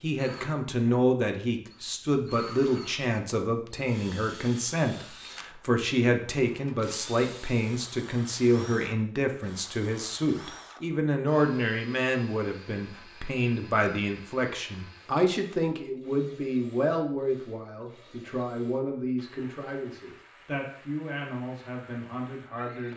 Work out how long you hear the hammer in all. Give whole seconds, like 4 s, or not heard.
not heard.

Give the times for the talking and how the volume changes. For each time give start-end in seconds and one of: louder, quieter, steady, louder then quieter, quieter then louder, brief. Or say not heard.
0.0-22.9 quieter.